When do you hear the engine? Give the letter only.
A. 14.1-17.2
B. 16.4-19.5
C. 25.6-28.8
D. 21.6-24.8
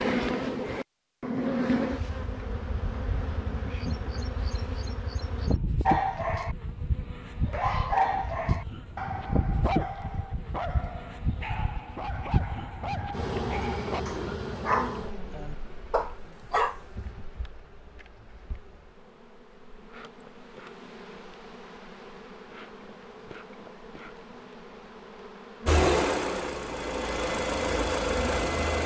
C.